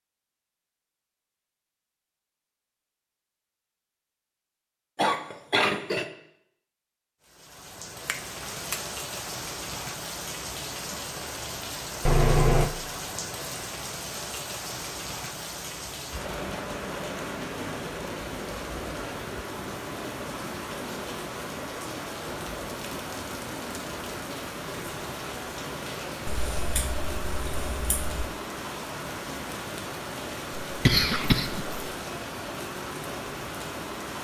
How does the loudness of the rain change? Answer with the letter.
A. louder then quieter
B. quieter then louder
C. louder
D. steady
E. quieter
D.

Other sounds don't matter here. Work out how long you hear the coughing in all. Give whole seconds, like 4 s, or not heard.
2 s.